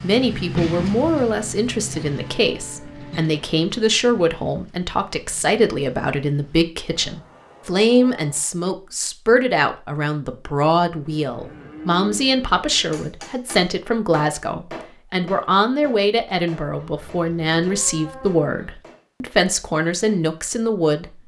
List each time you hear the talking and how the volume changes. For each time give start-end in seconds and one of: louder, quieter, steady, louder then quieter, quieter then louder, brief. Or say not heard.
0.0-21.2 steady.